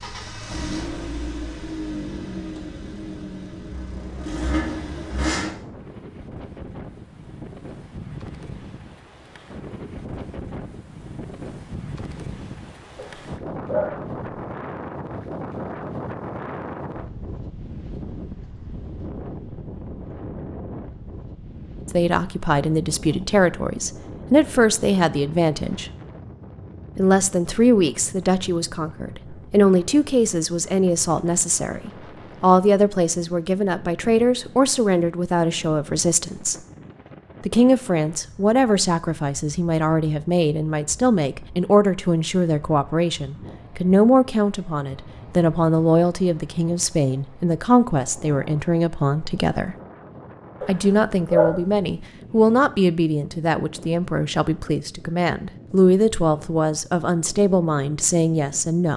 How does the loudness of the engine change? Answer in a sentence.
The volume of the engine goes down, then up.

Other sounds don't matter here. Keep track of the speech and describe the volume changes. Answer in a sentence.
The volume of the speech stays about the same.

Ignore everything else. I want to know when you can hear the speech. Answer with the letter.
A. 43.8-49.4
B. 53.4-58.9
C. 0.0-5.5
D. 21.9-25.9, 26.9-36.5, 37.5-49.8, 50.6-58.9
D.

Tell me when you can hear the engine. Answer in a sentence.
You can hear the engine from 0.0 to 5.5 s.